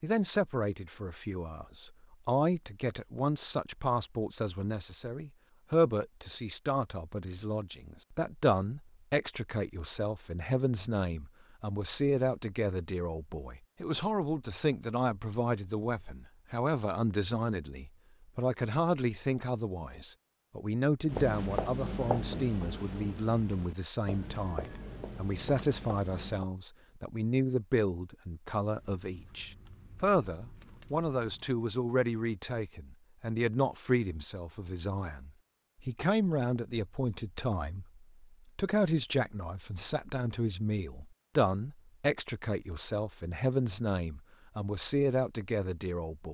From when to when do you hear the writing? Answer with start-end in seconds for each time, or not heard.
21.1-26.4.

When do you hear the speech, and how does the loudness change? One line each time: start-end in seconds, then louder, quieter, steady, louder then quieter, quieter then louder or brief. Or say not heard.
0.0-46.2 steady.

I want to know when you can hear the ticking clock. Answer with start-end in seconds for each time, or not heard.
not heard.